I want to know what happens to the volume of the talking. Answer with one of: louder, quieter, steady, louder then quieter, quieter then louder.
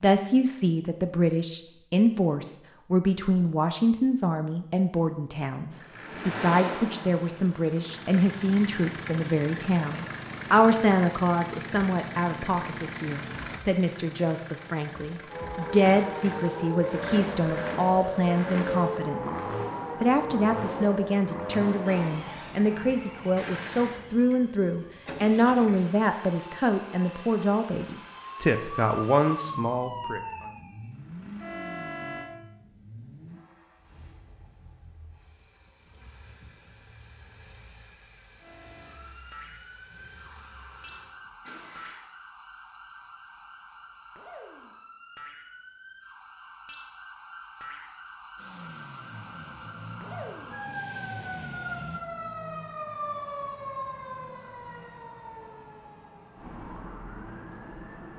steady.